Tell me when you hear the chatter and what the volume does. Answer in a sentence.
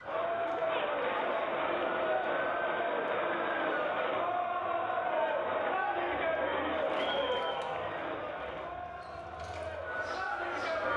You can hear the chatter from 0.0 to 10.9 s, getting quieter.